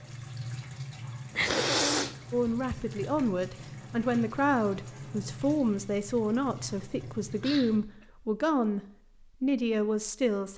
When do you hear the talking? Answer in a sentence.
The talking can be heard from 2.3 to 10.5 s.